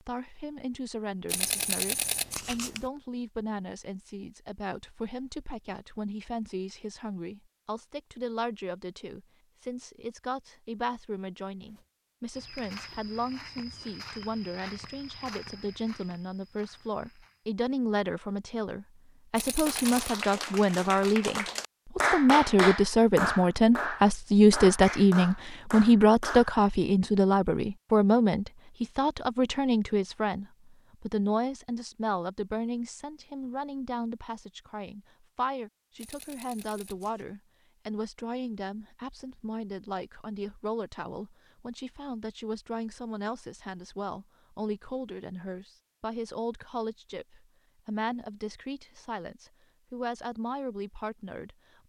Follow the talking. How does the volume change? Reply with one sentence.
The loudness of the talking goes up, then down.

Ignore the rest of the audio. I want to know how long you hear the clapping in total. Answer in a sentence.
The clapping can be heard for 7 seconds in total.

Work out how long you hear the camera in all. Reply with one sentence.
The camera can be heard for 4 seconds in total.